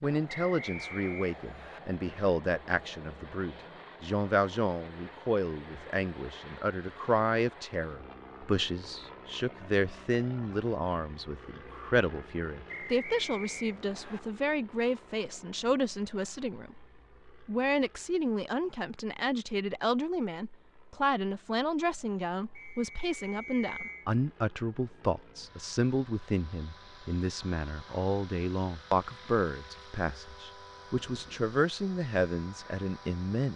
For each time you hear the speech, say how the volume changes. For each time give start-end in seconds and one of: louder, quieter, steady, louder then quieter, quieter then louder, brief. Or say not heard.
0.0-33.5 steady.